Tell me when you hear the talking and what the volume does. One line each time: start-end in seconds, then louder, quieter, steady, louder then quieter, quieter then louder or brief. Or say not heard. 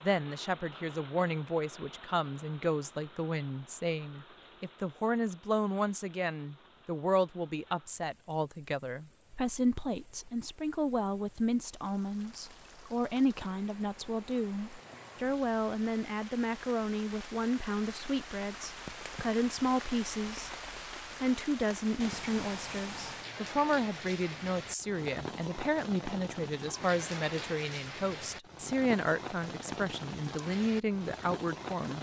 0.0-20.5 steady
21.2-31.9 steady.